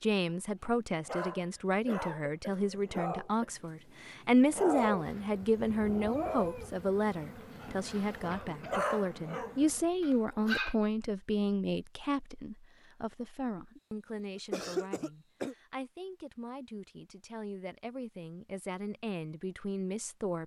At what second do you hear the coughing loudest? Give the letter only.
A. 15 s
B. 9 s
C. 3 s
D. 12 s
A.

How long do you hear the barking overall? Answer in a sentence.
You can hear the barking for 10 seconds altogether.